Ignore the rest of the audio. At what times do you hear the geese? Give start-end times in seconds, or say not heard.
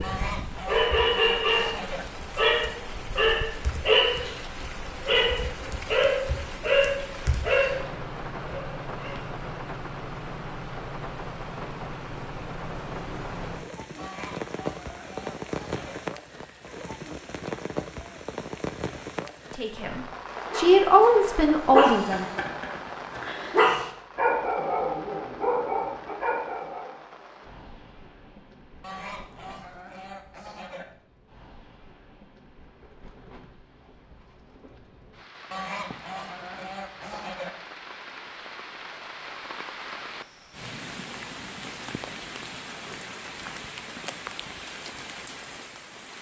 0.0-2.0, 13.9-16.0, 28.8-30.9, 35.5-37.5.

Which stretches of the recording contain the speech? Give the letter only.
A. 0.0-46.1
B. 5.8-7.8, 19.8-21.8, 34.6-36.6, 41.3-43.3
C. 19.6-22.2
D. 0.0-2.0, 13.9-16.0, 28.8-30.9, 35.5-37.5
C.